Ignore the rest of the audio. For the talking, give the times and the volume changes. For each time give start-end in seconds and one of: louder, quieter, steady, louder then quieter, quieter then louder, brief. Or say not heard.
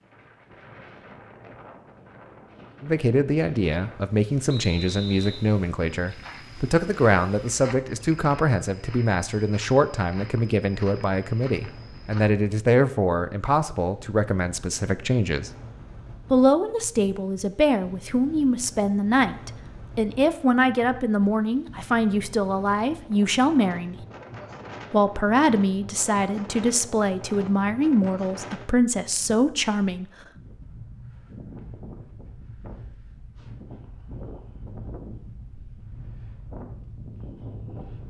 2.8-15.5 steady
16.3-23.9 steady
24.9-30.1 steady.